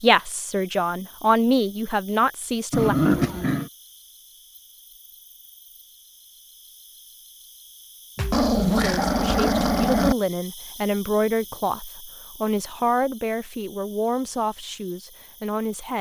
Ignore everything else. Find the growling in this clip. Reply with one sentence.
You can hear the growling from 2.7 to 3.7 s and from 8.2 to 10.2 s.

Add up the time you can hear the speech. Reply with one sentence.
You can hear the speech for 10 seconds altogether.